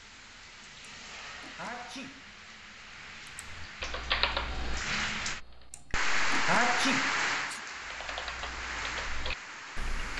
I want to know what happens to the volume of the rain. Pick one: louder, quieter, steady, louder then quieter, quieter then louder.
louder then quieter.